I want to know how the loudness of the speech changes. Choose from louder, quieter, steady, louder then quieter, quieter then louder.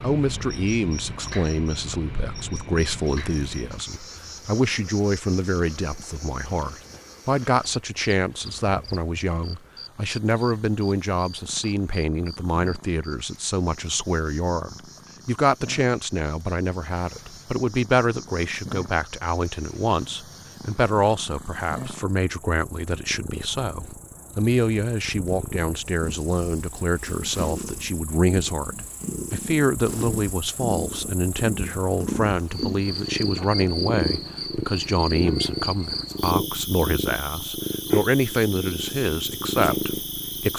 steady.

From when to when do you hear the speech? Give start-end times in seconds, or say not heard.
0.0-40.5.